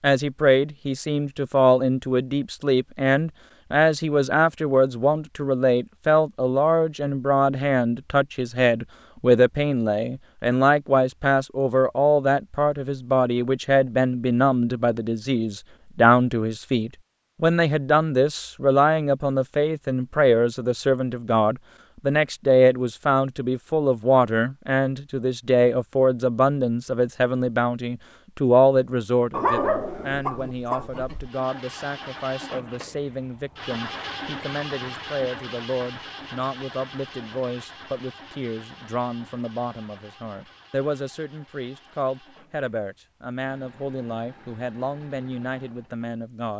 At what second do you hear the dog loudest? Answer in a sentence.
The loudest moment of the dog is at 30 seconds.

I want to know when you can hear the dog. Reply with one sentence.
The dog can be heard from 29.3 to 31.3 s.